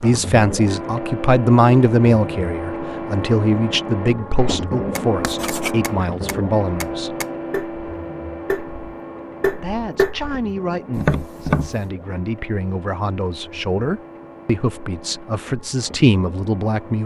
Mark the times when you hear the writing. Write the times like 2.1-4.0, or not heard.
5.2-5.8.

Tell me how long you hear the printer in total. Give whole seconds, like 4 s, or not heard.
17 s.